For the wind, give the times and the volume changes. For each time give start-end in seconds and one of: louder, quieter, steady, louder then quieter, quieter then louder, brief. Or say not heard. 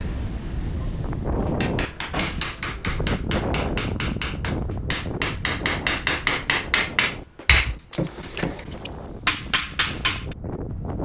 0.0-11.0 quieter.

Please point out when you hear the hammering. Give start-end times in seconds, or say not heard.
1.6-10.3.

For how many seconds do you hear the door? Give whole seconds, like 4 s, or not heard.
2 s.